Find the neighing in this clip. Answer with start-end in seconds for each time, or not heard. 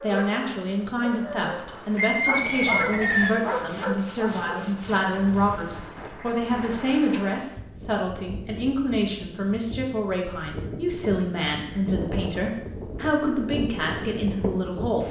1.9-3.4.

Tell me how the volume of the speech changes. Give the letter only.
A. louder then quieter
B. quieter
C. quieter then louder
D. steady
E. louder
D.